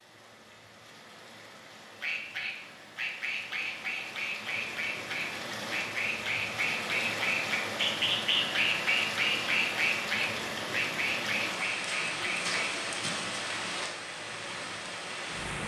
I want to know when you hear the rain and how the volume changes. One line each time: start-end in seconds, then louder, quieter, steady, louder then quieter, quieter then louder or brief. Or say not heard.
0.0-15.6 louder.